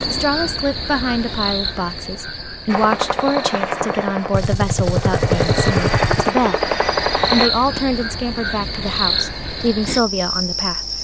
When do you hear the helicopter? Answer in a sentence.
You can hear the helicopter from 2.6 to 7.5 s.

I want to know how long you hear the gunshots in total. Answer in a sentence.
You can hear the gunshots for 2 seconds altogether.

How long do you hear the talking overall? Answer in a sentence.
You can hear the talking for 10 seconds altogether.